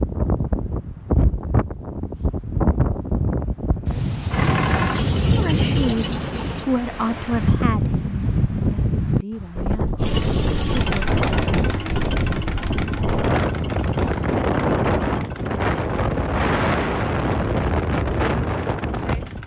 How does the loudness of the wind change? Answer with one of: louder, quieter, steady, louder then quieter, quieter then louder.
steady.